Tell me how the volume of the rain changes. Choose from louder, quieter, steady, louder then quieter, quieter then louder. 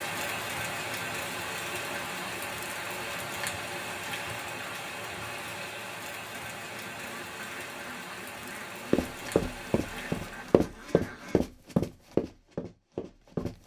quieter.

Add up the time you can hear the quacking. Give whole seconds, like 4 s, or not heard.
5 s.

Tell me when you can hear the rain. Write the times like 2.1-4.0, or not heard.
0.0-10.6.